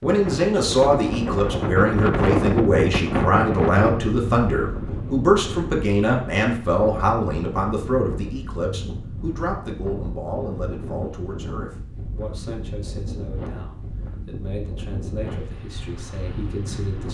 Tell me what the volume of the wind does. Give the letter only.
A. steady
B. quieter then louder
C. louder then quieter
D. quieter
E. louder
D.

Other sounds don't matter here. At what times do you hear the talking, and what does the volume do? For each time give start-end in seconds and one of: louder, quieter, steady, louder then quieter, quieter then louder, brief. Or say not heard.
0.0-17.0 quieter.